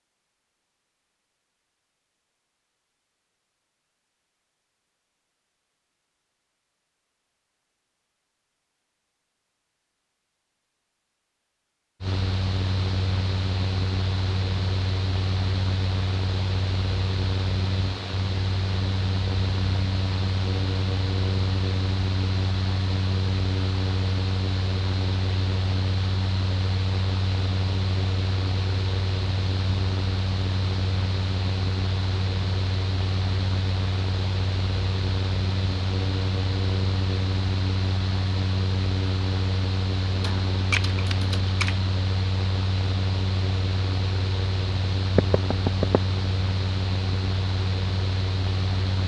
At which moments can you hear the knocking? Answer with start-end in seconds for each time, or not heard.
45.1-46.0.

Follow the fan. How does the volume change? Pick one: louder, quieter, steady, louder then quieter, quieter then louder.
steady.